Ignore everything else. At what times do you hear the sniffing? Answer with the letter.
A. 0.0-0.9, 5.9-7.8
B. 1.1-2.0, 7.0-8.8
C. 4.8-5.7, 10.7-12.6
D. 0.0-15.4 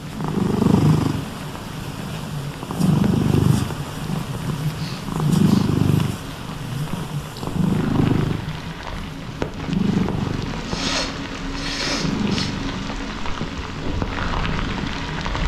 C.